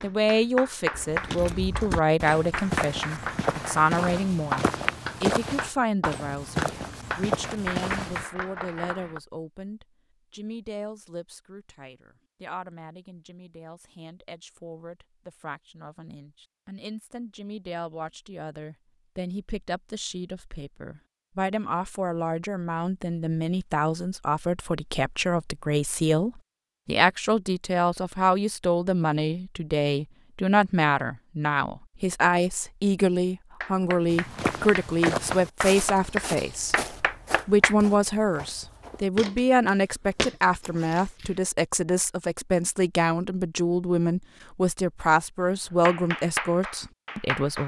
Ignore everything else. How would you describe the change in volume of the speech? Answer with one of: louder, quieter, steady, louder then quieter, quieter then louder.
quieter then louder.